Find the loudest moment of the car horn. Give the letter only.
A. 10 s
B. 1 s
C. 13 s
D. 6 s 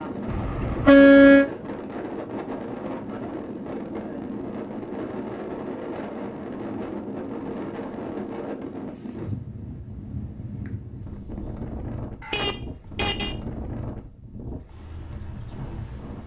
B.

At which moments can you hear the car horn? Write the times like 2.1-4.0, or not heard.
0.2-1.5, 12.2-13.3.